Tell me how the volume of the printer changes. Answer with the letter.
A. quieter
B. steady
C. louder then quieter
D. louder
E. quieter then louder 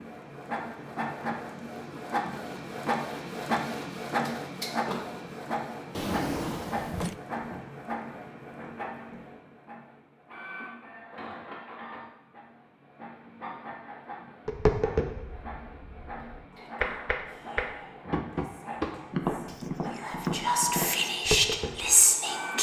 A.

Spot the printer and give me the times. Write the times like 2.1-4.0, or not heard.
0.0-22.5.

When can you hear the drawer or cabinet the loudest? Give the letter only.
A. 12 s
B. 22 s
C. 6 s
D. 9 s
C.